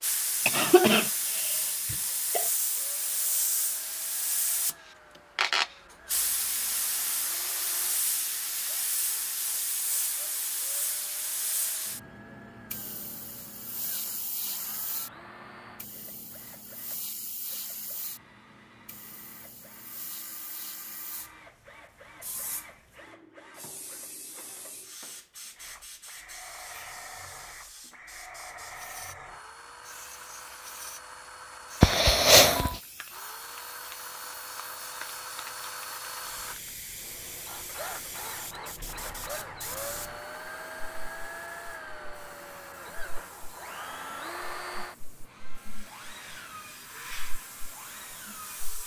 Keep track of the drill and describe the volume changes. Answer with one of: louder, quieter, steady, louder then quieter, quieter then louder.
louder.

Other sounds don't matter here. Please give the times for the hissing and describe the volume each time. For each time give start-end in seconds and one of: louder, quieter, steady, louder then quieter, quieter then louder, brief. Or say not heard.
0.0-48.8 quieter.